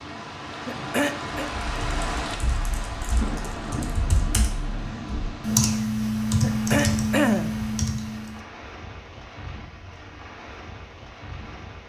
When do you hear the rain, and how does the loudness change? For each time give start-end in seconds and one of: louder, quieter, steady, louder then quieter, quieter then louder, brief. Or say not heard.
0.0-11.8 quieter.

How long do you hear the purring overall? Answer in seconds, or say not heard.
not heard.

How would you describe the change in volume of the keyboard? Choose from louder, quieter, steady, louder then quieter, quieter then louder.
louder.